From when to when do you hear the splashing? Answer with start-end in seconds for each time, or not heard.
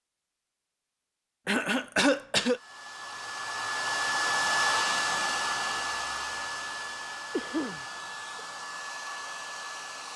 not heard.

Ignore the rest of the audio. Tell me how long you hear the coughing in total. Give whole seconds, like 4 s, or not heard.
2 s.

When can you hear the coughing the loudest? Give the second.
2 s.